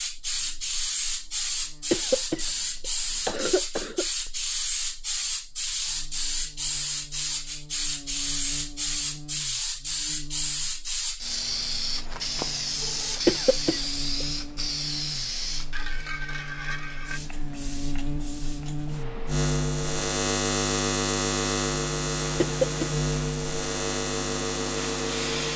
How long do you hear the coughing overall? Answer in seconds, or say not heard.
4 s.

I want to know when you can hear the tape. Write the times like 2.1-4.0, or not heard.
not heard.